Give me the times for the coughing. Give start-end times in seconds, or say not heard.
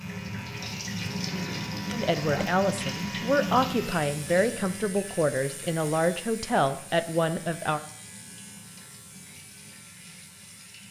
1.3-2.5.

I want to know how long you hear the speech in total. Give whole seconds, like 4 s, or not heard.
6 s.